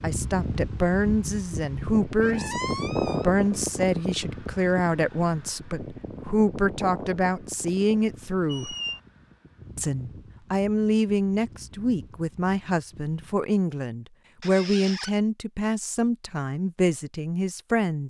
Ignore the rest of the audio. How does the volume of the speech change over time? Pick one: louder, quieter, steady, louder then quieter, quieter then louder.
steady.